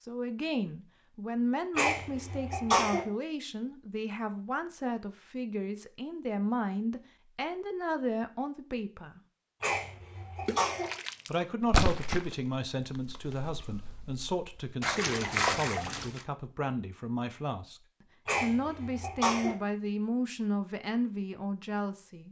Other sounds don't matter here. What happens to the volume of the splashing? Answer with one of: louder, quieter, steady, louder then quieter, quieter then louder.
quieter then louder.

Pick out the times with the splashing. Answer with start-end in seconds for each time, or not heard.
10.4-16.2.